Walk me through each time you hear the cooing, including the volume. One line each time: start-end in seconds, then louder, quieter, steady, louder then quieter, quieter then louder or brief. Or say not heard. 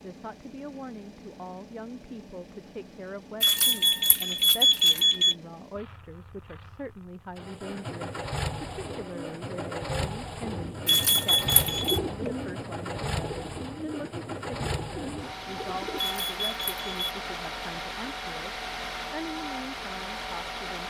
8.7-16.1 louder then quieter.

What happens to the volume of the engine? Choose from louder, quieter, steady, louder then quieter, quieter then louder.
louder.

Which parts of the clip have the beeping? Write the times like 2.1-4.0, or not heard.
3.4-5.3, 10.8-12.0, 15.9-16.9.